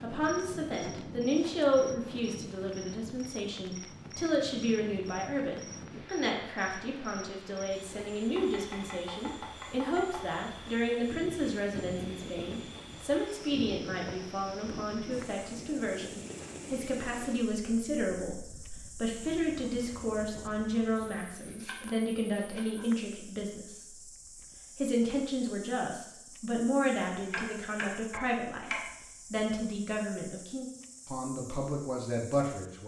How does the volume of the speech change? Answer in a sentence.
The volume of the speech stays about the same.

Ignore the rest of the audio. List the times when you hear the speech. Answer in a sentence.
You can hear the speech from 0.0 to 24.1 s and from 24.8 to 32.8 s.